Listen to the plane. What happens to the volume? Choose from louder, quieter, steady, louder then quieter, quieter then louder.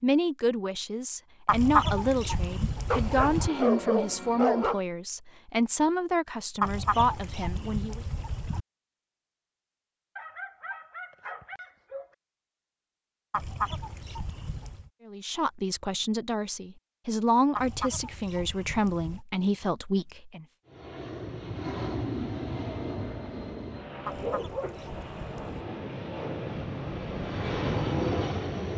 quieter then louder.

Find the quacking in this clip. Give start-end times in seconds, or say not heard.
1.4-3.5, 6.6-8.7, 13.3-14.9, 17.6-19.2, 24.1-25.6.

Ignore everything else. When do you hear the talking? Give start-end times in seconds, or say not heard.
0.0-8.0, 15.1-20.4.